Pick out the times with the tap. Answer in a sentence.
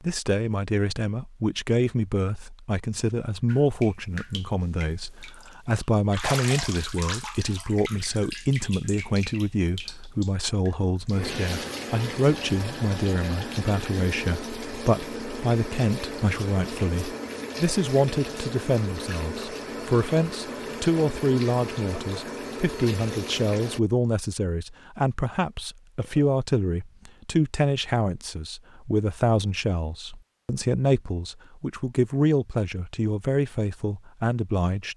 The tap can be heard from 3.5 to 23.8 s.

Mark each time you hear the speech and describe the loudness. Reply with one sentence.
You can hear the speech from 0.0 to 34.9 s, at a steady volume.